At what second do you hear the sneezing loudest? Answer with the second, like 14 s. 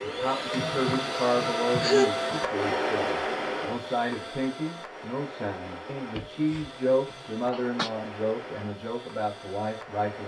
2 s.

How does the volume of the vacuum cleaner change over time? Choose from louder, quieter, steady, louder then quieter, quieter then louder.
quieter.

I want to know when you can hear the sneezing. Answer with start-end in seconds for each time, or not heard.
0.5-2.1, 6.2-7.9.